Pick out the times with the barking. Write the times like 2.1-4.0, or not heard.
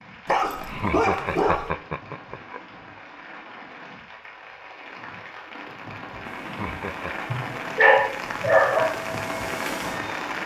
0.2-1.7, 7.3-8.9.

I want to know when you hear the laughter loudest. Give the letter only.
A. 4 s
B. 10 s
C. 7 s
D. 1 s
D.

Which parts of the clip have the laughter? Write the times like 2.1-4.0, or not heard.
0.7-2.6, 6.4-7.2.